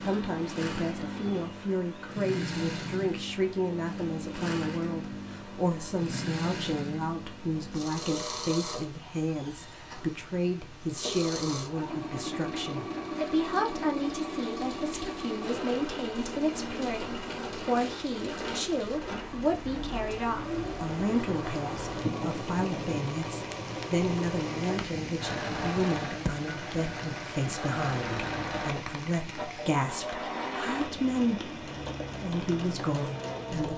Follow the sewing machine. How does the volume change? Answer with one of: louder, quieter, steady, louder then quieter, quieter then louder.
steady.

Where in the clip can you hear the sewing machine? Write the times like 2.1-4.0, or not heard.
0.0-33.7.